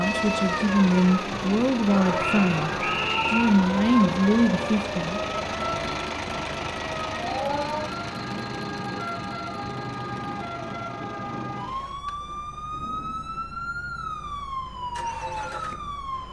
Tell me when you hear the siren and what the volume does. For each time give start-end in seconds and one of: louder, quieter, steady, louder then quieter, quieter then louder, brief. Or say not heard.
0.0-16.2 steady.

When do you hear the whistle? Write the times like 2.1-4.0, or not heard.
2.2-3.5.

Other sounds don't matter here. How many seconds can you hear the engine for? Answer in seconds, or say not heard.
16 s.